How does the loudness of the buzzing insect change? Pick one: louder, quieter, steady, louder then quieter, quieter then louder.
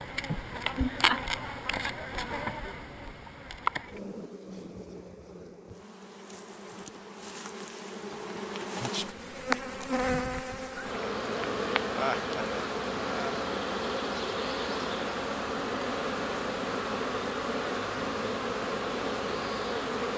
quieter then louder.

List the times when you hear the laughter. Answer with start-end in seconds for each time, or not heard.
0.2-1.2, 11.9-13.5.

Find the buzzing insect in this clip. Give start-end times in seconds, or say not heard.
0.0-20.1.